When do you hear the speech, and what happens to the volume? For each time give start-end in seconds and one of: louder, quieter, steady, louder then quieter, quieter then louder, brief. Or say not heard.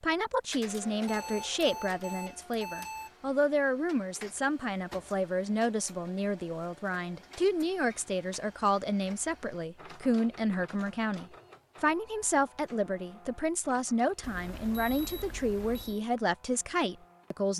0.0-17.5 steady.